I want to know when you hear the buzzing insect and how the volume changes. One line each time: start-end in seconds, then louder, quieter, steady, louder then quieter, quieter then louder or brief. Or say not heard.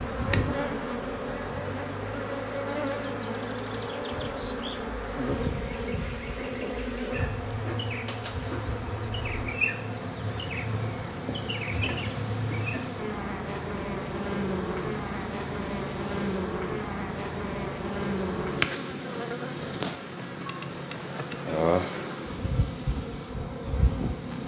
0.0-24.4 steady.